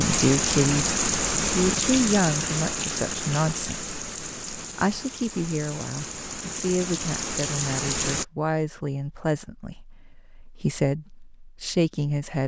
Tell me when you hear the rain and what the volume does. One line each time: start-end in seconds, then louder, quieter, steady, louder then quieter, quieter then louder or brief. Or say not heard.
0.0-8.2 quieter then louder.